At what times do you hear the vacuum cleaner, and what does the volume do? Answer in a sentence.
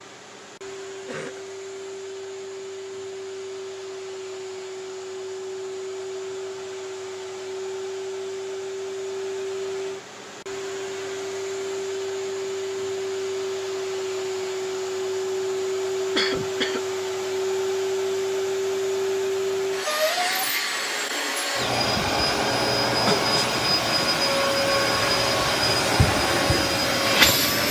You can hear the vacuum cleaner from 0.0 to 27.6 s, getting louder.